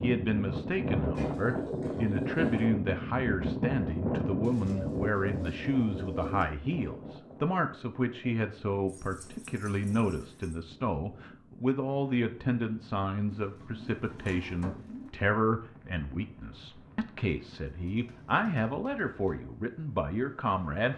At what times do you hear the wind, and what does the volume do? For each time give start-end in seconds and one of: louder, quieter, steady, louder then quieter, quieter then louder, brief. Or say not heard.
0.0-20.9 quieter.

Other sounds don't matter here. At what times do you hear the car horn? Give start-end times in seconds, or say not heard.
not heard.